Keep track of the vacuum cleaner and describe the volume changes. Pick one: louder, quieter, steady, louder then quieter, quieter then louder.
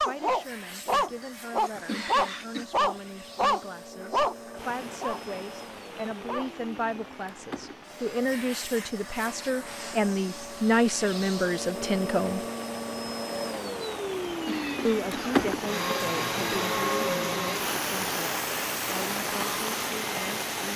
louder.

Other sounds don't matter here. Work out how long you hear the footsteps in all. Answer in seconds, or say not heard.
not heard.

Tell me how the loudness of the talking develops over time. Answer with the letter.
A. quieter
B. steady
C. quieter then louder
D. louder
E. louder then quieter
E.